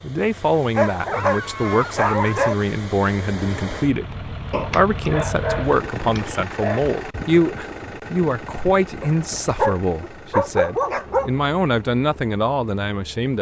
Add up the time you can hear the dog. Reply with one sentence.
You can hear the dog for 7 seconds altogether.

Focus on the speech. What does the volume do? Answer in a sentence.
The volume of the speech stays about the same.